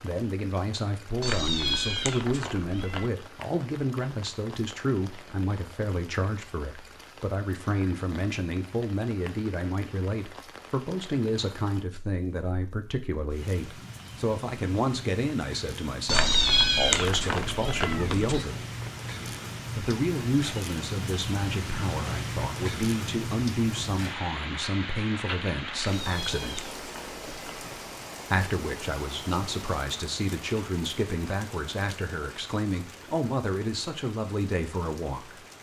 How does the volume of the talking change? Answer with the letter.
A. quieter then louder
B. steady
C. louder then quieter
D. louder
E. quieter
B.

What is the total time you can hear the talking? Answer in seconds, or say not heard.
33 s.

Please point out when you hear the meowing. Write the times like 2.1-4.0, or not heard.
1.2-3.1, 16.1-18.4, 25.8-27.9.